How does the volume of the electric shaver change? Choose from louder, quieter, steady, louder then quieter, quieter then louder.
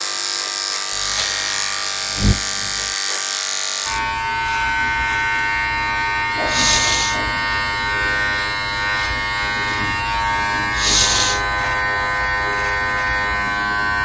steady.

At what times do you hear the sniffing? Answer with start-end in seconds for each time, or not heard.
0.9-2.9, 6.5-7.3, 10.7-11.4.